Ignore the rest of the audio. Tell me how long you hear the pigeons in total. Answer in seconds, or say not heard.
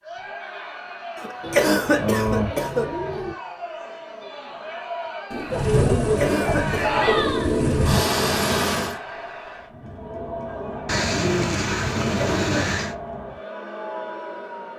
7 s.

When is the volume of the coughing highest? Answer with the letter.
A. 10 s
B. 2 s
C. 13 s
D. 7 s
B.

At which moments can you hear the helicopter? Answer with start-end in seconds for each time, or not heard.
5.5-9.0.